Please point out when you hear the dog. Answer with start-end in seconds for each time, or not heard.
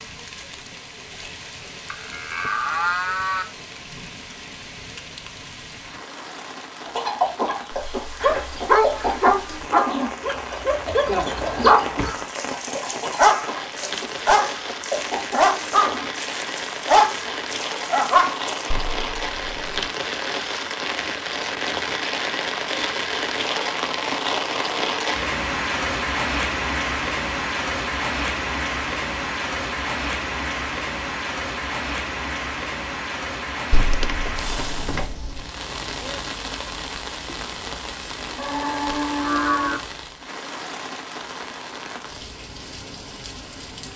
8.2-18.7.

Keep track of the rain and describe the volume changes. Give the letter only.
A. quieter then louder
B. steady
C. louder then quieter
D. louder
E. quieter
C.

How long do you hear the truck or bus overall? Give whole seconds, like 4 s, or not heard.
not heard.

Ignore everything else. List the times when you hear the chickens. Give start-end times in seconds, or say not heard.
6.8-16.1.